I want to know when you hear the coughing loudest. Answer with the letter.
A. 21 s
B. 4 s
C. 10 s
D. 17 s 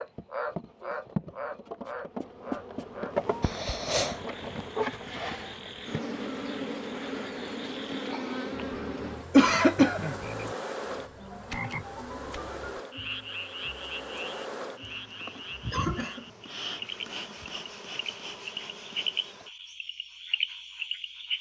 C.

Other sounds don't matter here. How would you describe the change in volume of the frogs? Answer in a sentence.
The volume of the frogs goes down, then up.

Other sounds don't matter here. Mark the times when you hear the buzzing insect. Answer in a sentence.
The buzzing insect can be heard from 0.0 to 19.5 s.